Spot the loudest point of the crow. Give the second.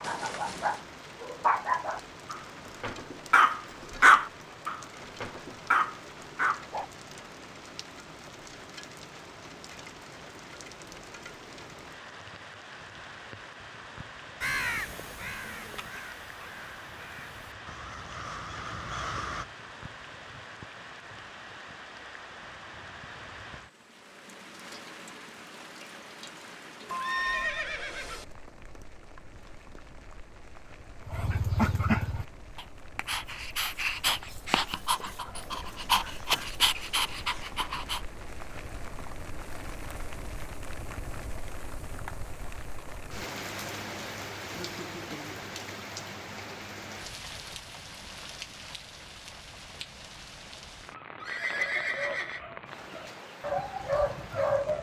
15 s.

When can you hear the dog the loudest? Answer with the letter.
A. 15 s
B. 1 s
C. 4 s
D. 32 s
C.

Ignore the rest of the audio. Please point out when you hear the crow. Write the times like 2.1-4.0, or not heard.
14.4-19.4.